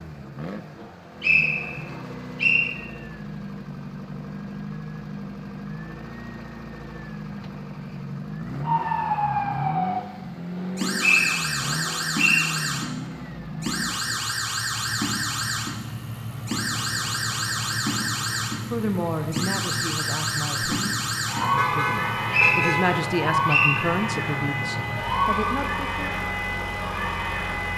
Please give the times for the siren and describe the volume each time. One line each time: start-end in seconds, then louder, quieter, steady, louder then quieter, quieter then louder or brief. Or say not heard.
8.6-27.7 steady.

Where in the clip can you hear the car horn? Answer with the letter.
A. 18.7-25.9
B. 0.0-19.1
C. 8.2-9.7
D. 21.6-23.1
D.